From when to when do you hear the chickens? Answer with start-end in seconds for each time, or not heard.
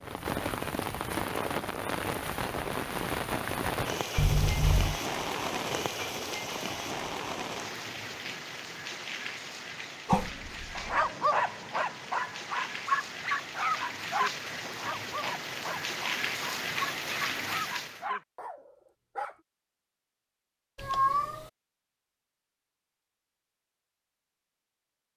not heard.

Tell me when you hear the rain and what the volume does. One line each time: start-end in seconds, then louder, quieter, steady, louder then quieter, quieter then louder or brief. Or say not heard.
0.0-18.1 quieter then louder.